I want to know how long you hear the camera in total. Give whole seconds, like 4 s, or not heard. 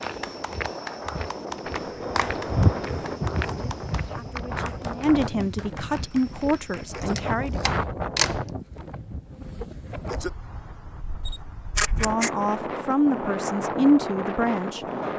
4 s.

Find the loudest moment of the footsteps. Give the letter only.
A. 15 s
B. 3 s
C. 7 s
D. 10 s
B.